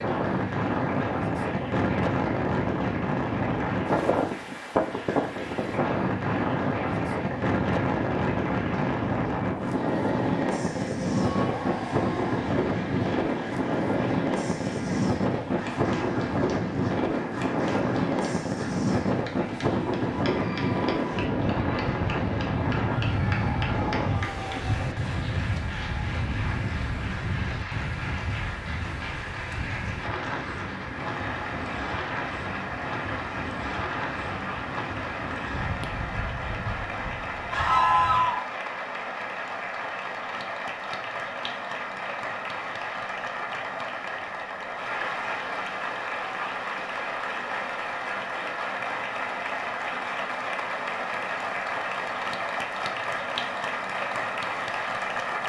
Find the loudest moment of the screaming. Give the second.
38 s.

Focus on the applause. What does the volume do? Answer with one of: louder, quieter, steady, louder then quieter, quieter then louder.
louder.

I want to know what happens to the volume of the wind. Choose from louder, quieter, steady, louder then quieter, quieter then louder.
quieter.